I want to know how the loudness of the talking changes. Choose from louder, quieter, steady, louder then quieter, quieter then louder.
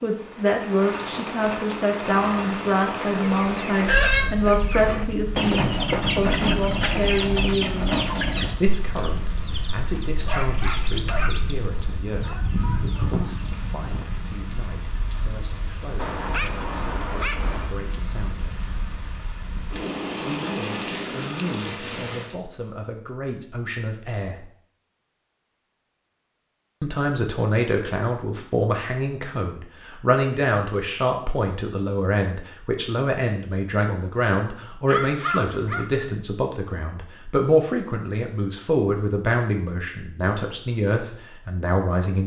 quieter then louder.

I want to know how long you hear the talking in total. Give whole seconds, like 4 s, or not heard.
38 s.